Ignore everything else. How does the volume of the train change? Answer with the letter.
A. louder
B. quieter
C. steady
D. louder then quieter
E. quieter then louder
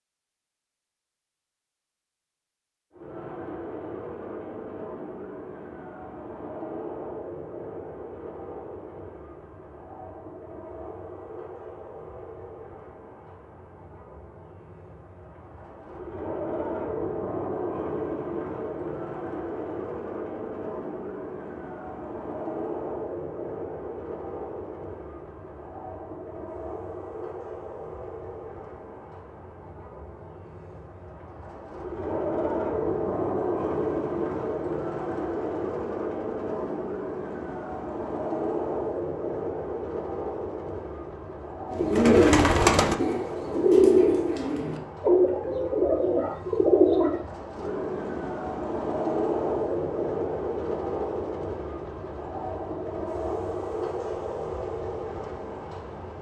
A.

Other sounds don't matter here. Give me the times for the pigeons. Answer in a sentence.
You can hear the pigeons from 41.7 to 47.2 s.